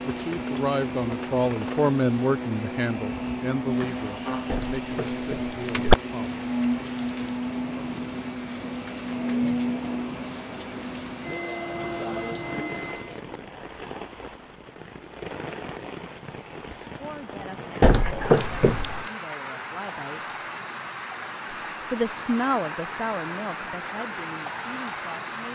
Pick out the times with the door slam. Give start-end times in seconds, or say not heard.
4.5-6.0, 17.8-19.1.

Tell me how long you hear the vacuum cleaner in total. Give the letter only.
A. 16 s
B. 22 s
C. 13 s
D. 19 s
C.